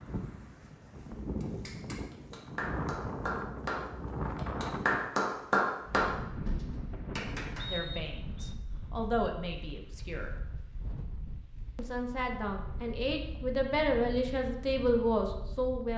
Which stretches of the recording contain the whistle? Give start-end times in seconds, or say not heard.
7.5-8.6.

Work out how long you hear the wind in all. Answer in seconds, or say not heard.
16 s.